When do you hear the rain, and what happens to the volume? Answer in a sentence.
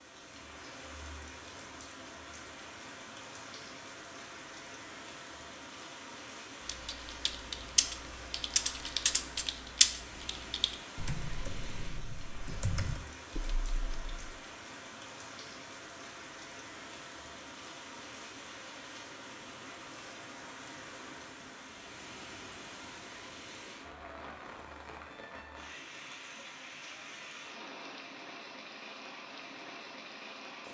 The rain can be heard from 0.0 to 30.6 s, at a steady volume.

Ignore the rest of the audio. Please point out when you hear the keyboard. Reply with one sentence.
You can hear the keyboard from 6.7 to 14.3 s.